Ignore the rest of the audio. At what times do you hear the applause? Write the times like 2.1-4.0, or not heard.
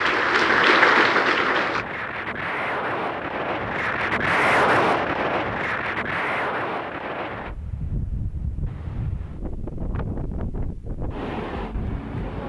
0.0-1.9.